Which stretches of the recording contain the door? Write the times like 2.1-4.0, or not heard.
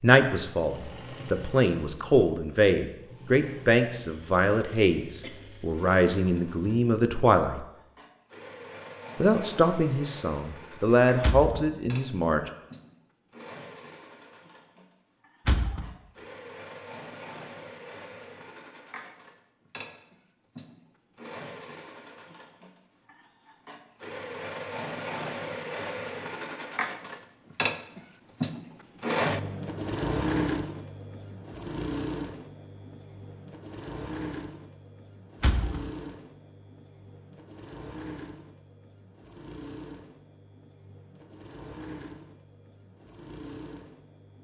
11.2-11.7, 15.4-15.9, 35.4-35.9.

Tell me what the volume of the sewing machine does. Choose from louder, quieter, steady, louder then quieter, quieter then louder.
louder then quieter.